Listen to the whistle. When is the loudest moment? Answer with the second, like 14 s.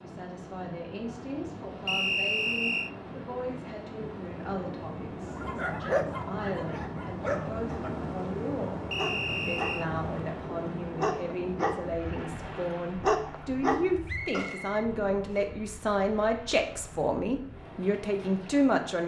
2 s.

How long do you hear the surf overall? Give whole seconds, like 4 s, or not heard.
19 s.